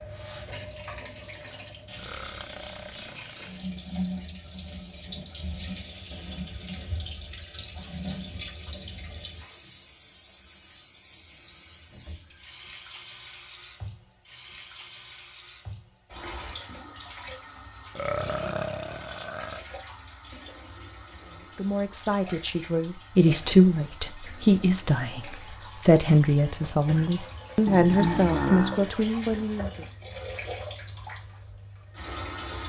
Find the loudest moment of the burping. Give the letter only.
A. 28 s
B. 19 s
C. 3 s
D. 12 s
A.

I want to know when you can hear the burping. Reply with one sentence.
The burping can be heard from 1.9 to 3.5 s, from 17.9 to 19.6 s and from 27.6 to 28.9 s.